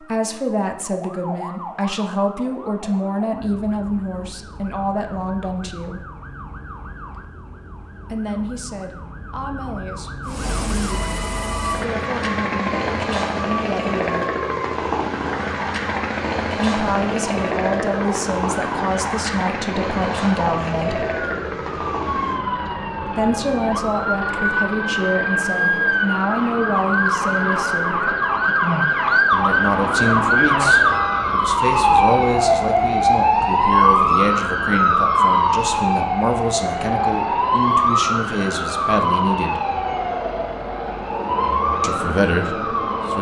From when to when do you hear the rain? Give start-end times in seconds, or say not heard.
not heard.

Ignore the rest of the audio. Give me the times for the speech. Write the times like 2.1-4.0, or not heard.
0.1-6.0, 8.1-14.2, 16.6-21.1, 23.1-28.1, 29.3-39.6, 41.8-43.1.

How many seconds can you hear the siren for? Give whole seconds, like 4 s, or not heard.
43 s.